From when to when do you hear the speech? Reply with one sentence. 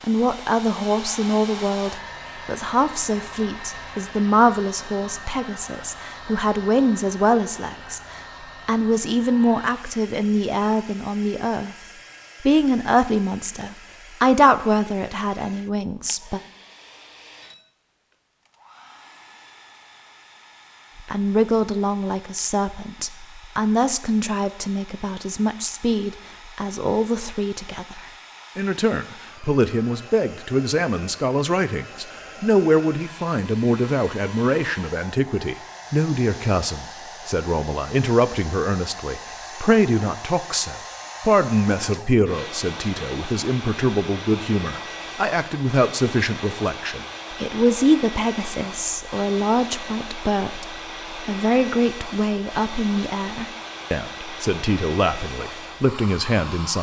You can hear the speech from 0.0 to 11.8 s, from 12.4 to 16.4 s and from 20.9 to 56.7 s.